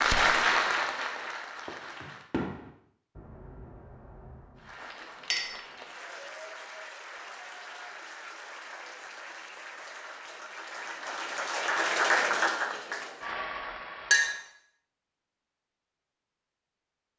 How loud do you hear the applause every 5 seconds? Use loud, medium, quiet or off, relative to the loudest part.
loud, quiet, loud, off.